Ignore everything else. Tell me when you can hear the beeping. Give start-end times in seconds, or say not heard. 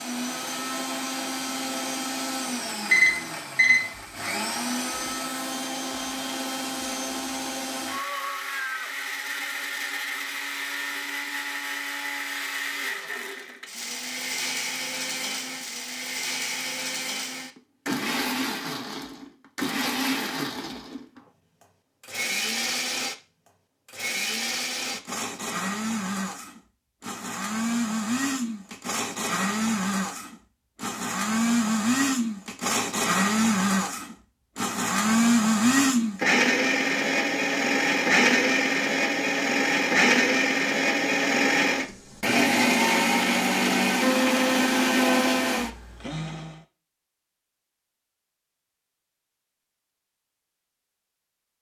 2.9-3.9.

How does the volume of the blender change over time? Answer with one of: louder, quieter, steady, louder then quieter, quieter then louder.
louder.